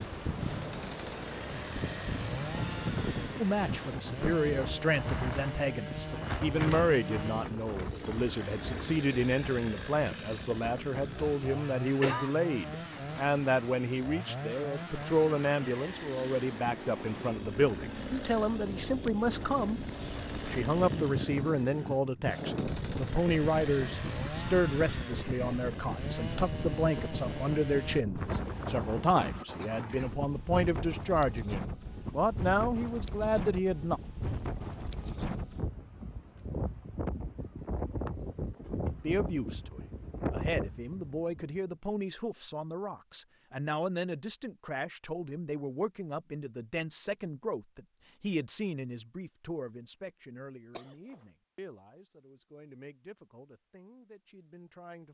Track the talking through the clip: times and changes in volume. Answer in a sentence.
The talking can be heard from 3.4 to 19.8 s, at a steady volume; from 20.4 to 34.0 s, at a steady volume; and from 38.9 to 55.0 s, getting quieter.